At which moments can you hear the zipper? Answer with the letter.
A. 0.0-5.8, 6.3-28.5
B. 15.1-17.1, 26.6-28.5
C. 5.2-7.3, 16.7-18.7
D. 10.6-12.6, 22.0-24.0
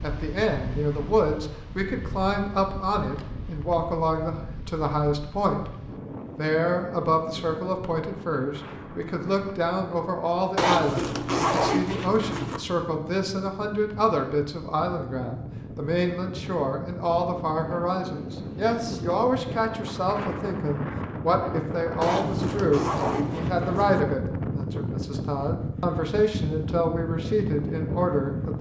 D.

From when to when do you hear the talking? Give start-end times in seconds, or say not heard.
0.0-5.8, 6.3-28.5.